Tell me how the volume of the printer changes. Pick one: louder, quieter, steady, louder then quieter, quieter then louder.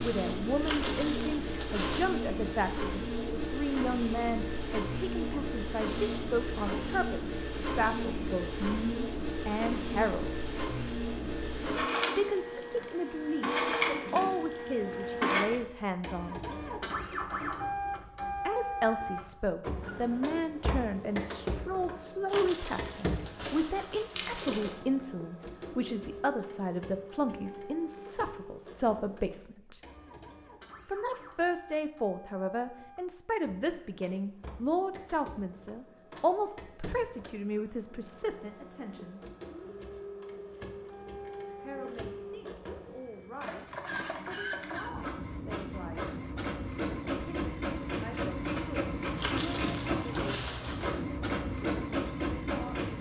quieter then louder.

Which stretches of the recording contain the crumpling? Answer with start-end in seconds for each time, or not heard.
0.6-2.1, 22.2-24.9, 49.1-51.0.